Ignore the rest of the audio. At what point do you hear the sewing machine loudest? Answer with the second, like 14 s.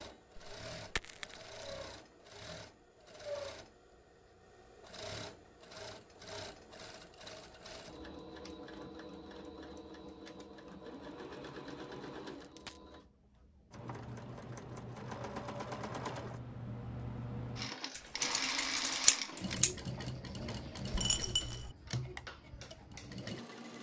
19 s.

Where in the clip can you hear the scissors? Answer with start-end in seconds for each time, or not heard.
17.9-19.8.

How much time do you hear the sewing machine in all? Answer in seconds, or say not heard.
24 s.